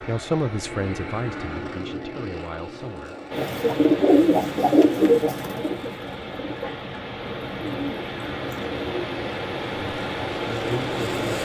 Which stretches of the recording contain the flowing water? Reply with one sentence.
You can hear the flowing water from 3.3 to 11.3 s.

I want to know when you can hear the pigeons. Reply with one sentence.
You can hear the pigeons from 3.3 to 9.1 s.